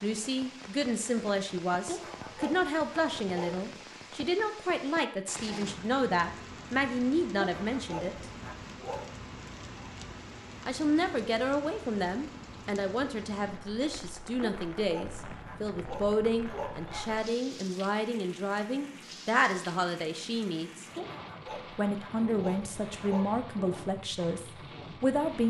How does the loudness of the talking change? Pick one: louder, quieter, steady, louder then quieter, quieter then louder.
steady.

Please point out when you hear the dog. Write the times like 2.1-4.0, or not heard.
1.9-3.9, 7.4-9.2, 14.4-17.2, 20.9-23.4.